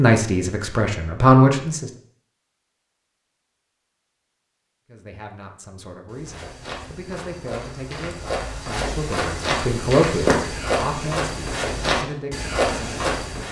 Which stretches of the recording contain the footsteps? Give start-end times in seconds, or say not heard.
6.0-13.4.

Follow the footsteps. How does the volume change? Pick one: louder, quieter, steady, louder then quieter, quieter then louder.
louder.